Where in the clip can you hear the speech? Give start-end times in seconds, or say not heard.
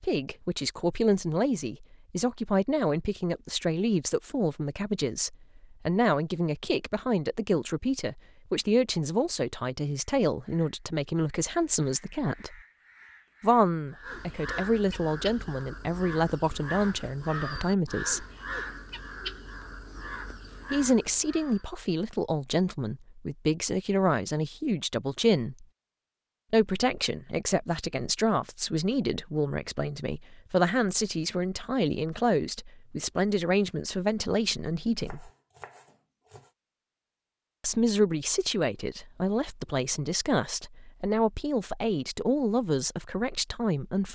0.0-12.6, 13.4-18.2, 20.7-25.6, 26.5-35.3, 37.6-44.1.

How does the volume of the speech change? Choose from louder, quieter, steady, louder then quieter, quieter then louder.
steady.